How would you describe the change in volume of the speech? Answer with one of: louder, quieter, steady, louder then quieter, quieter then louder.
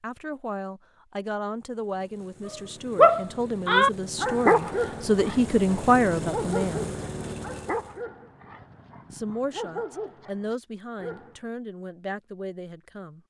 louder then quieter.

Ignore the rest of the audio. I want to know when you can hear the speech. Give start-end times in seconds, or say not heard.
0.0-7.0, 9.1-13.2.